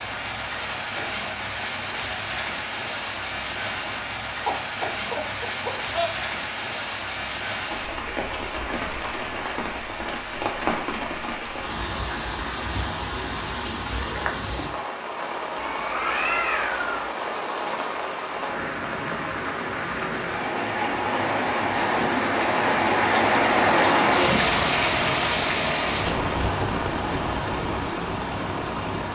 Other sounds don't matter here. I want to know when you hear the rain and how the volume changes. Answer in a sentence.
You can hear the rain from 0.0 to 29.1 s, getting louder.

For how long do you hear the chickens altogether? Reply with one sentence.
The chickens can be heard for 2 seconds in total.